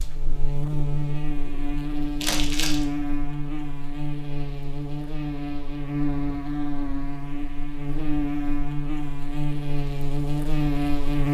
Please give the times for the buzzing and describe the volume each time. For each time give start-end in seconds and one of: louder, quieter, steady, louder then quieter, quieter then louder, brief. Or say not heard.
0.0-11.2 steady.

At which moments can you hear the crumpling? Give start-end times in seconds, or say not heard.
2.2-2.9.